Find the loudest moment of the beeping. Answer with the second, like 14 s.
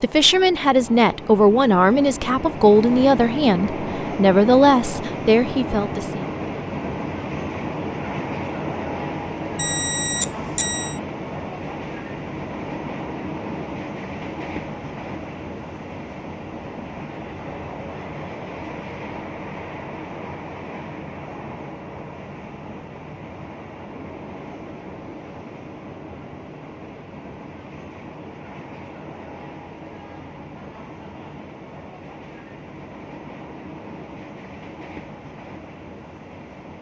10 s.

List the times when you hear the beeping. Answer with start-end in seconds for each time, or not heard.
9.6-11.0.